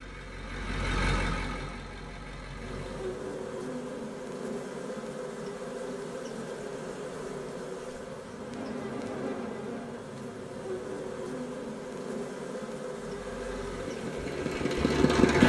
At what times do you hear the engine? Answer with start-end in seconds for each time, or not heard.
0.0-3.3, 13.1-15.4.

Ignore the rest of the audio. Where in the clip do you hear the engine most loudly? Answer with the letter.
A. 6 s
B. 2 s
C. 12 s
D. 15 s
D.